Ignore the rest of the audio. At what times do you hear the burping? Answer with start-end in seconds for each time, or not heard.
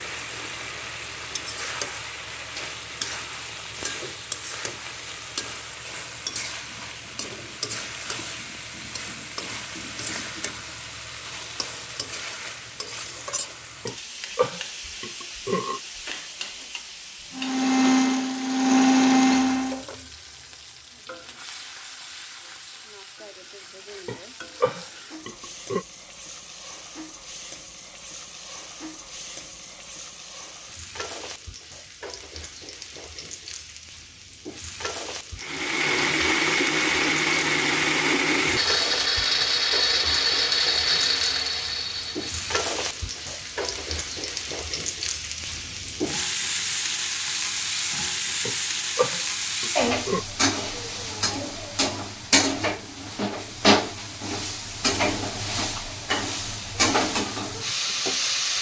13.8-15.8, 24.1-25.9, 48.5-50.2.